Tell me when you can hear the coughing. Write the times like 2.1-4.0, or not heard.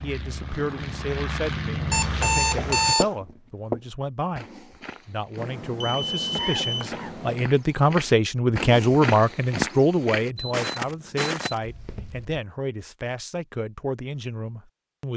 6.3-7.2.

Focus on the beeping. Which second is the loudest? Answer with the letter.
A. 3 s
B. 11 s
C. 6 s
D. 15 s
A.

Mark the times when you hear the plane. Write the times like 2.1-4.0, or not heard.
0.0-3.0.